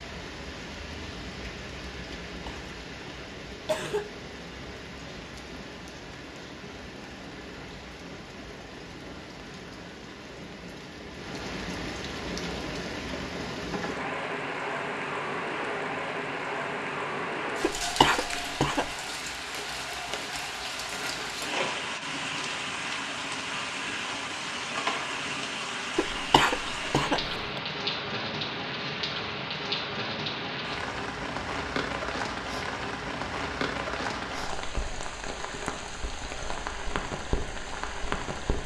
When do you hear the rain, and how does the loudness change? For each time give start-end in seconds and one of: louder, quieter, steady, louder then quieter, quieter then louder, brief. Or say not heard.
0.0-38.6 louder.